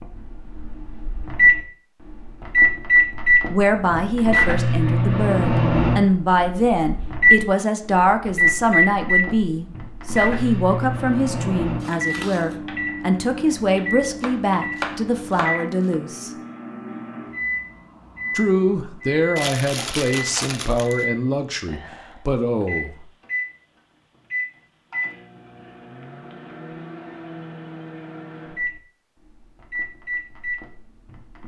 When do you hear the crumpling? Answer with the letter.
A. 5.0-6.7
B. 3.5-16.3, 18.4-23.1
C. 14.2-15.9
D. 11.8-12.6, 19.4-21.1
D.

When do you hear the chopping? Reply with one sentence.
You can hear the chopping from 14.2 to 15.9 s.